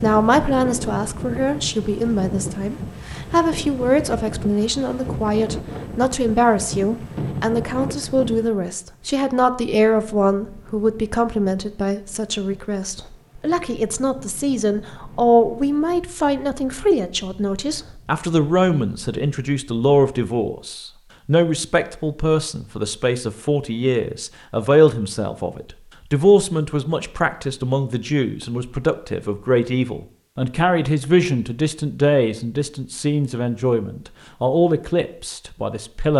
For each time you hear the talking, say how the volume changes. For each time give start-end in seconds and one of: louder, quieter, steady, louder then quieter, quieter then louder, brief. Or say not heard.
0.0-36.1 steady.